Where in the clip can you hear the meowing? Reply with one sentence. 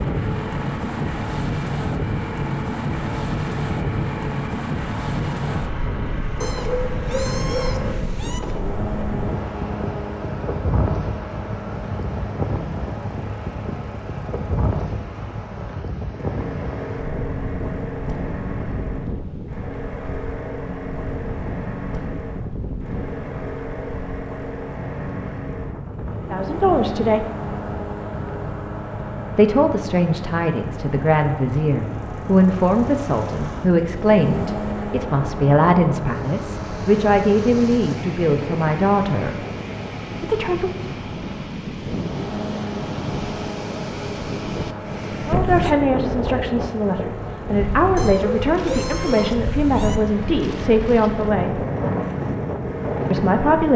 The meowing can be heard from 6.4 to 8.4 s and from 48.0 to 50.0 s.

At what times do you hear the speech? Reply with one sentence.
The speech can be heard from 26.3 to 27.2 s, from 29.4 to 39.4 s, from 40.2 to 40.9 s, from 45.2 to 51.6 s and from 53.1 to 53.7 s.